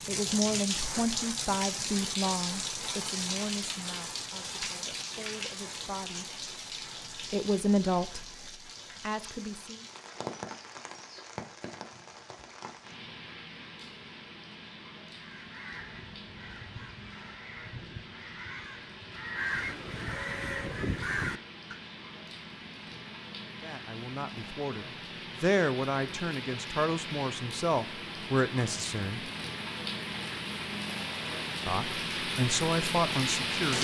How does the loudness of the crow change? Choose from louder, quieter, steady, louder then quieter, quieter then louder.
louder.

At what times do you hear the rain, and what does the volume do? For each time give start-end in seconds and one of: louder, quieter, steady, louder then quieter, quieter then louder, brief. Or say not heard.
0.0-33.7 quieter then louder.